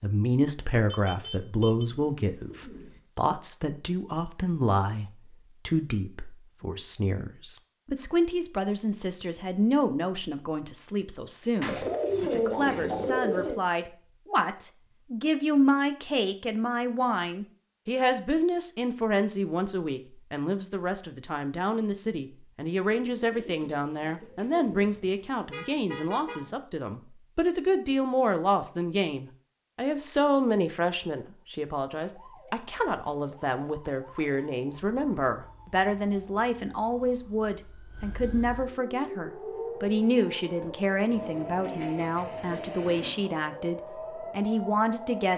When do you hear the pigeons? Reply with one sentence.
You can hear the pigeons from 1.9 to 3.0 s, from 11.6 to 13.6 s, from 22.9 to 24.9 s and from 41.0 to 43.1 s.